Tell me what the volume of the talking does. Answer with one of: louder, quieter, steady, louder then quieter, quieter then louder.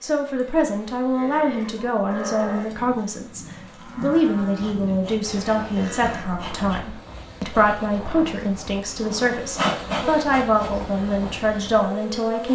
steady.